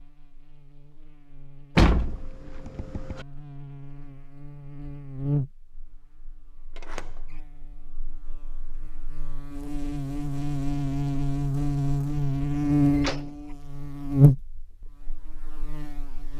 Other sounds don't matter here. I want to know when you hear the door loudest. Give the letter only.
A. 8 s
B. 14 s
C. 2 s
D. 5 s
C.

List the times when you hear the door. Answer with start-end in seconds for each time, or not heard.
1.8-3.2, 6.8-7.3, 12.9-13.3.